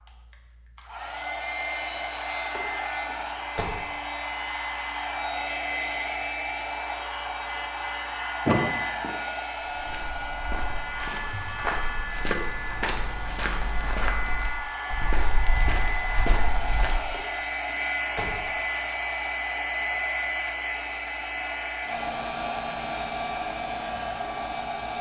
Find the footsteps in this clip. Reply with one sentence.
The footsteps can be heard from 9.6 to 17.0 s.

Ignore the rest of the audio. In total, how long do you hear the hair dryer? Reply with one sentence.
The hair dryer can be heard for 25 seconds in total.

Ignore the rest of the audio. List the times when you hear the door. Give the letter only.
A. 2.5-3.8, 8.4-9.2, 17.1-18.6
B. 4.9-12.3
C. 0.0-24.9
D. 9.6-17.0
A.